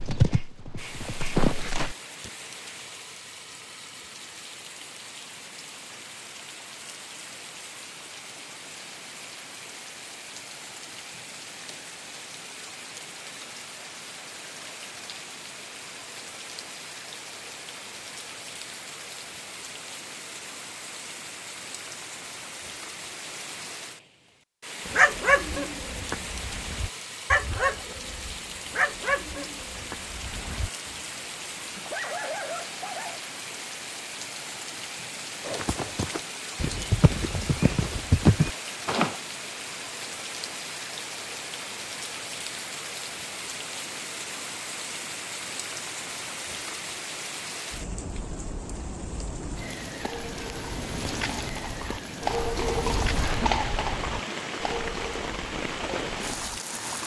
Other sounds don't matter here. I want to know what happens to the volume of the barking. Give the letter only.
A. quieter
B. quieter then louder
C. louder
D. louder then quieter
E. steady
B.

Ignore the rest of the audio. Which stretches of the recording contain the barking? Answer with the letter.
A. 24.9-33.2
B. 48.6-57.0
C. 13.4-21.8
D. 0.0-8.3
A.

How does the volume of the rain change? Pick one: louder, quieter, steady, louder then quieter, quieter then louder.
louder.